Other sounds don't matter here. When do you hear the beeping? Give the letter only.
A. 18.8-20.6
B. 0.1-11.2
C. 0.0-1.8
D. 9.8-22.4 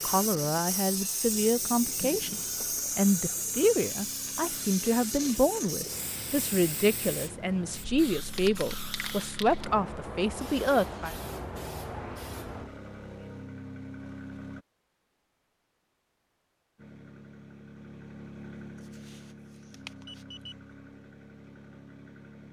A.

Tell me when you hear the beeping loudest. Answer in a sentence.
The loudest moment of the beeping is at 20 seconds.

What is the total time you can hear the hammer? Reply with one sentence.
You can't hear the hammer here.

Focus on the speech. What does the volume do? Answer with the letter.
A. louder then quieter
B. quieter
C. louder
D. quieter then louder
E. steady
E.